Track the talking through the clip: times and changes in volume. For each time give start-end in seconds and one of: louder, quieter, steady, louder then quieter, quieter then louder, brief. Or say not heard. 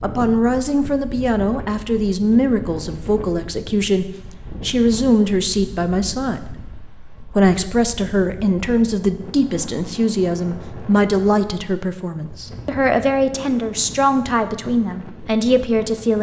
0.0-16.1 steady.